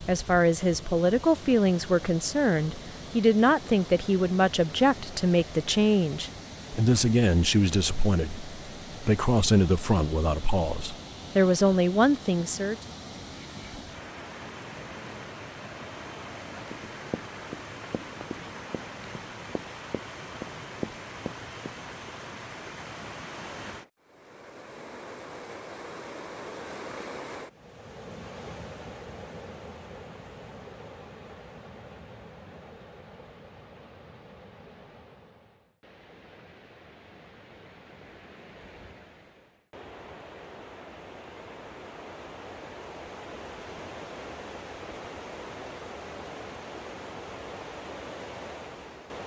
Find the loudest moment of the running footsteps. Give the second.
21 s.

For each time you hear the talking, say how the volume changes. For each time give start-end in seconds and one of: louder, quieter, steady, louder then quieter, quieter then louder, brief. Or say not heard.
0.1-12.8 steady.